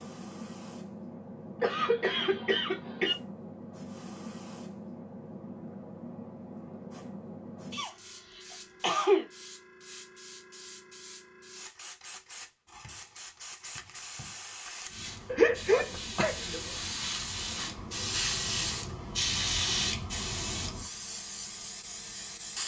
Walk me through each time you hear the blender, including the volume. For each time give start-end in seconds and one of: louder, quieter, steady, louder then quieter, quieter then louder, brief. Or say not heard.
not heard.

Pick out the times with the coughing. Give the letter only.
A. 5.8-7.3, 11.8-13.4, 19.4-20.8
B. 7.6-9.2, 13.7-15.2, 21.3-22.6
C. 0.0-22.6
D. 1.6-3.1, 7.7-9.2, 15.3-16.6
D.